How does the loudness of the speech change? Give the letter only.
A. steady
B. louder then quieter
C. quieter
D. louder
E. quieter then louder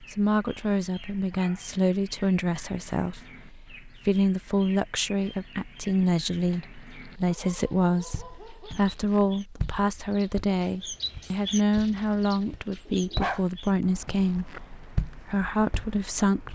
A.